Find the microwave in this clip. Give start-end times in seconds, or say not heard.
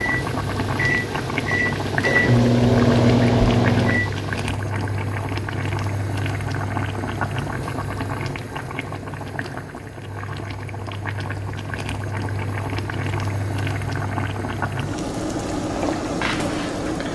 0.0-4.5.